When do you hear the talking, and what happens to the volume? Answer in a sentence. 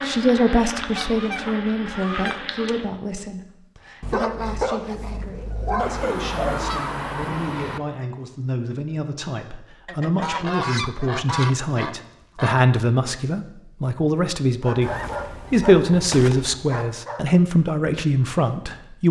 The talking can be heard from 0.0 to 19.0 s, getting quieter then louder.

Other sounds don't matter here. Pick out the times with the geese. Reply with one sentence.
The geese can be heard from 0.9 to 2.7 s, from 5.8 to 7.8 s, from 9.8 to 12.7 s and from 14.8 to 16.7 s.